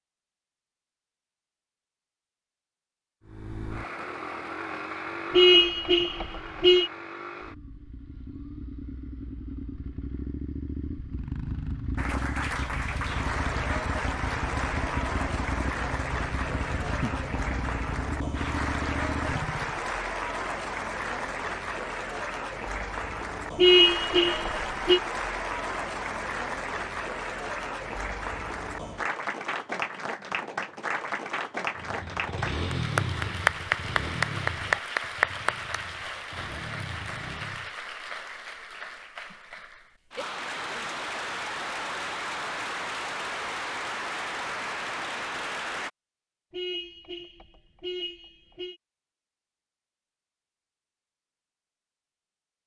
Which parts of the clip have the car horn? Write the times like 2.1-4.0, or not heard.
5.3-6.9, 23.6-25.0, 46.5-48.8.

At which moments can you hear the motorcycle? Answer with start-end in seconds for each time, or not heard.
3.2-19.9, 31.8-37.7.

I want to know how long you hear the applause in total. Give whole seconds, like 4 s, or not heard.
34 s.